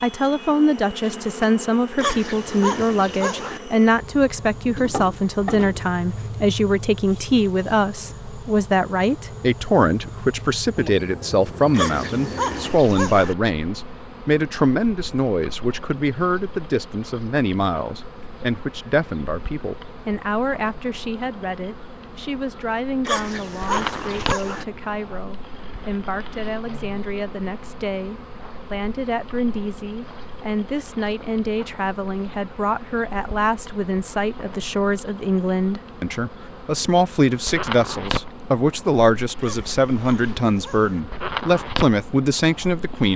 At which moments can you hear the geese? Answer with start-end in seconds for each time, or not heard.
not heard.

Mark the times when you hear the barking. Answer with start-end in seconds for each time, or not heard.
1.9-3.6, 11.7-13.3, 23.1-24.6, 39.4-41.0.